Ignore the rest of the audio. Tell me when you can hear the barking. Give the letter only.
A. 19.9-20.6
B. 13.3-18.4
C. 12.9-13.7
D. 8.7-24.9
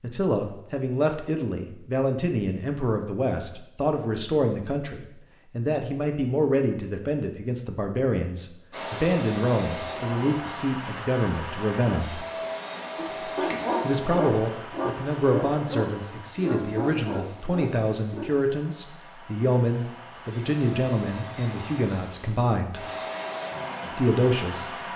B.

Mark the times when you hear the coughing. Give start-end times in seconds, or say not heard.
12.9-13.7.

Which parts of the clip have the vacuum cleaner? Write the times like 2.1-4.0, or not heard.
8.7-24.9.